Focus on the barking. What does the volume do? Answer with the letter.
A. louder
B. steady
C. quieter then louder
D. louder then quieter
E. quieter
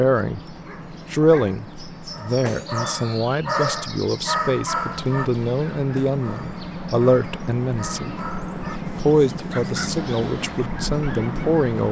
D.